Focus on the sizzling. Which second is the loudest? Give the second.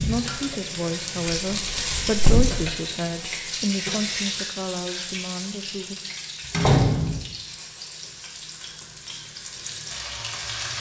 2 s.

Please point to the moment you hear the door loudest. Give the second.
7 s.